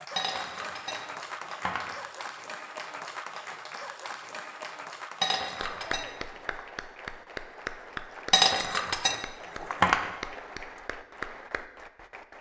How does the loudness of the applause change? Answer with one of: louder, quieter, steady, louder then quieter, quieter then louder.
steady.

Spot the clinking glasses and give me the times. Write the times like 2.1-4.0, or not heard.
0.1-1.9, 5.2-6.6, 8.3-10.1.